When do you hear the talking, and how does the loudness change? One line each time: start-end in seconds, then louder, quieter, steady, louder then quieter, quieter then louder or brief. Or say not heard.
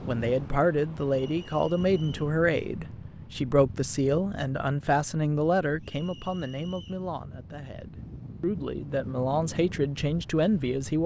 0.1-11.0 quieter then louder.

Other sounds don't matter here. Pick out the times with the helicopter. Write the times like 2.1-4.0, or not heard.
not heard.